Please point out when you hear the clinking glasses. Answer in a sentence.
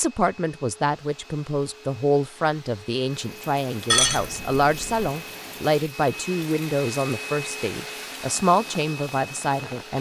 You can hear the clinking glasses from 3.9 to 5.1 s.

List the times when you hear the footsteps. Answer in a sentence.
You can't hear the footsteps here.